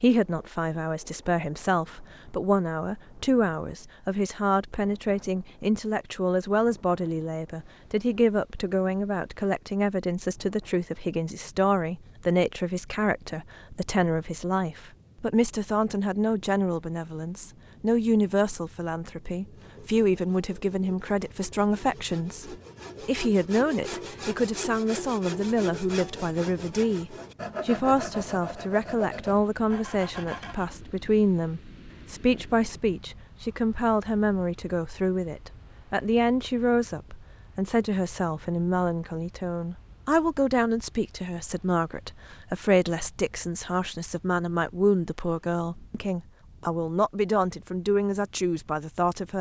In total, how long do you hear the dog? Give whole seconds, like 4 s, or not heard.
not heard.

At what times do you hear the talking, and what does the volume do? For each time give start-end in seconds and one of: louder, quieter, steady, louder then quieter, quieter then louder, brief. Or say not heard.
0.0-49.3 steady.